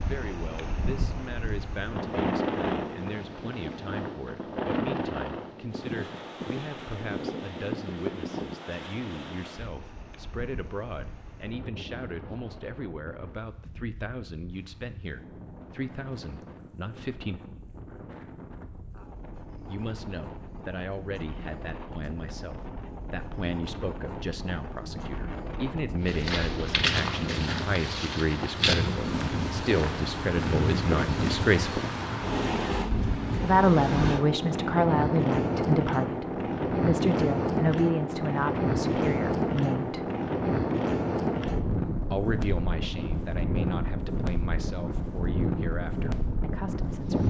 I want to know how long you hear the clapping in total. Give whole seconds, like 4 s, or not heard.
not heard.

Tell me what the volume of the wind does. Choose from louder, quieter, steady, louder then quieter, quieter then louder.
quieter then louder.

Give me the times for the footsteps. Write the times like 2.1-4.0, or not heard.
26.1-32.0.